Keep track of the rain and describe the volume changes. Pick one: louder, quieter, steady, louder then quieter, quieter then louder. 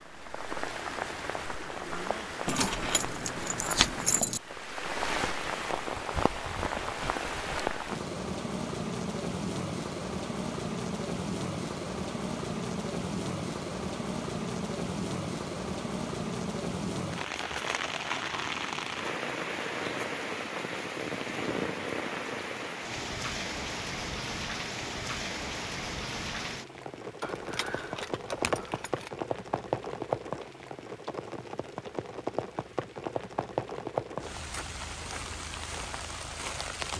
steady.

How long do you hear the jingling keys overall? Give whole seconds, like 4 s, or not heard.
4 s.